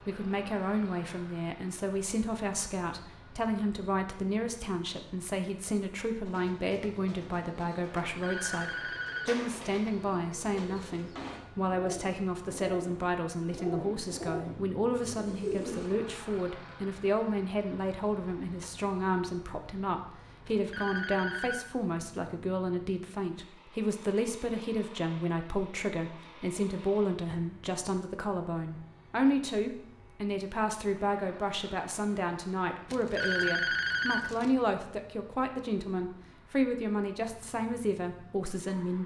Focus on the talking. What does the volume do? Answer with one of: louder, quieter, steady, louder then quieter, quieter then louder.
steady.